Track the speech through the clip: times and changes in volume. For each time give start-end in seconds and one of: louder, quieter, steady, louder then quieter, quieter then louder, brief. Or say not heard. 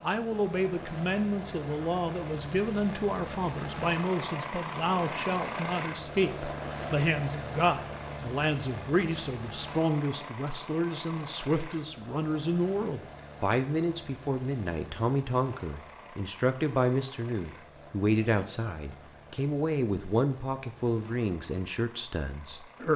0.0-22.9 steady.